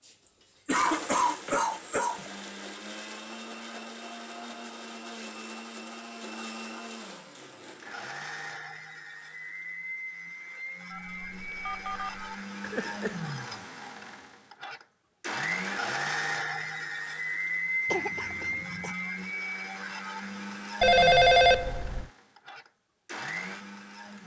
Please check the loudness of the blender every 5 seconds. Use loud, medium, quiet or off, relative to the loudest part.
medium, medium, medium, loud, medium.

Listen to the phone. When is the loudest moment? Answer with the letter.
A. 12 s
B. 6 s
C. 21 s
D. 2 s
C.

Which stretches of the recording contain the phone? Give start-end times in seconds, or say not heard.
1.4-2.4, 10.9-12.3, 20.8-22.1.